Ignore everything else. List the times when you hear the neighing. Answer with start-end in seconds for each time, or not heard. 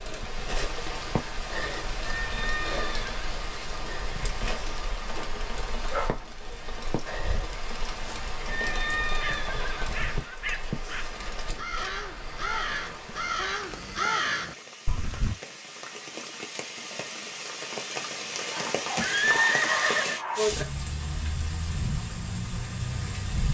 2.0-3.3, 8.4-10.3, 18.9-20.2.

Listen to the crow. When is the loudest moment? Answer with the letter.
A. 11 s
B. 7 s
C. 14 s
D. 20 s
C.